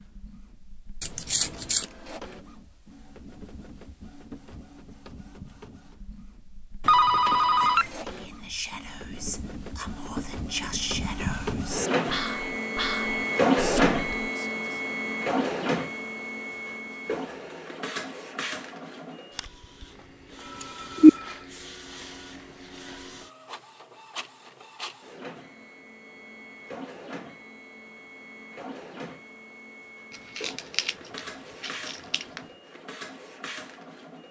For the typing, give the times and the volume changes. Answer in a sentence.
You can't hear the typing here.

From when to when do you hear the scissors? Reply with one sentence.
You can hear the scissors from 1.0 to 1.9 s, from 20.6 to 21.1 s and from 30.4 to 32.4 s.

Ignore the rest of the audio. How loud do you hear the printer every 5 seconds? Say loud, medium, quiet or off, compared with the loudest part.
quiet, quiet, loud, medium, quiet, quiet, quiet.